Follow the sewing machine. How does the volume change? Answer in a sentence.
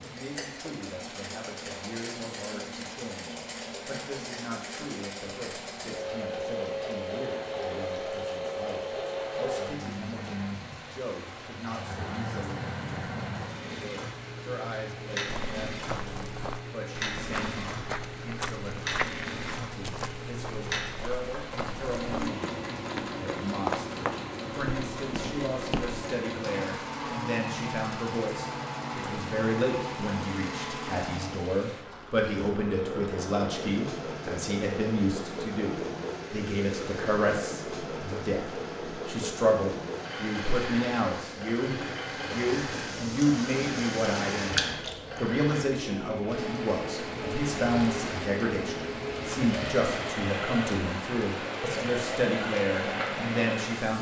The loudness of the sewing machine stays about the same.